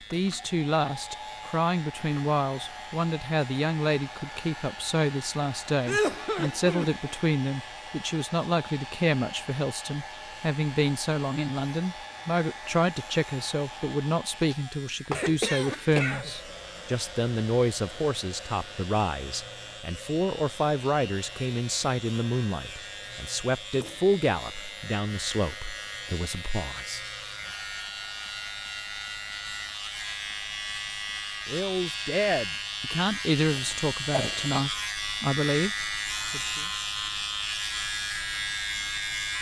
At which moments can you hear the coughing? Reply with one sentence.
The coughing can be heard from 5.8 to 7.0 s, from 15.1 to 16.3 s and from 33.5 to 34.6 s.